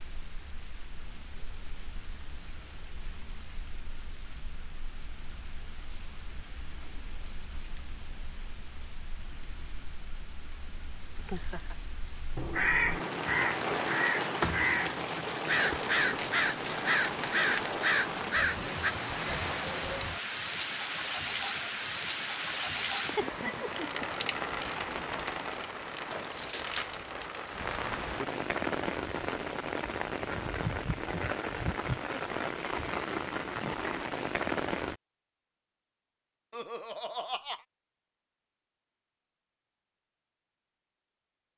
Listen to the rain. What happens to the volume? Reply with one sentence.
The loudness of the rain goes up.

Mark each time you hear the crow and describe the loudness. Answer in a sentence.
The crow can be heard from 12.3 to 18.9 s, at a steady volume.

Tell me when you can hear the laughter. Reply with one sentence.
You can hear the laughter from 11.2 to 11.8 s, from 23.1 to 24.1 s and from 36.5 to 37.6 s.